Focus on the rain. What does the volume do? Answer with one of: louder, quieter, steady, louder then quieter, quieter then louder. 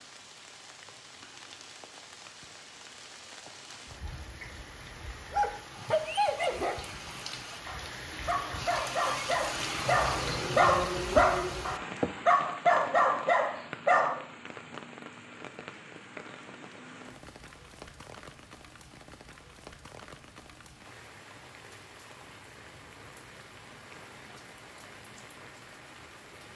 louder then quieter.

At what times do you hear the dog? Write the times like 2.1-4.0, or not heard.
5.3-14.2.